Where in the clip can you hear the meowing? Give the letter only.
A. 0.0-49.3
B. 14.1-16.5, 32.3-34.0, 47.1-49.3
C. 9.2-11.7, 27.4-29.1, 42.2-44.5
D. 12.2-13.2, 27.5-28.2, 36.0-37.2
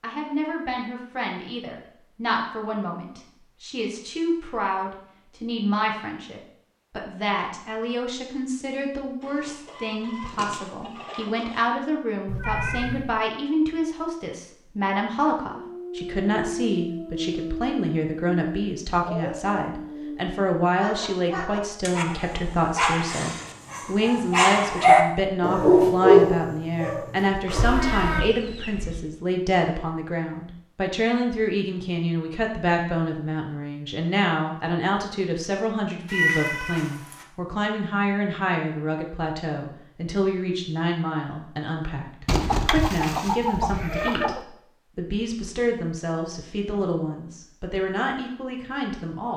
D.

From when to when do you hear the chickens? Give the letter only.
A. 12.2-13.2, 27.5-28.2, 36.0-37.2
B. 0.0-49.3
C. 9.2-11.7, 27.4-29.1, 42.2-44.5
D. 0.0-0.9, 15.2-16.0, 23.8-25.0
C.